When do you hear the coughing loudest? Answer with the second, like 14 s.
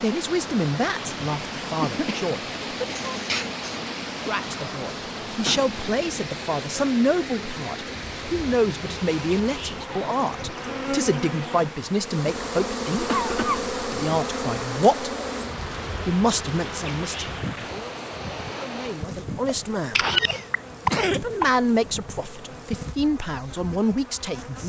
21 s.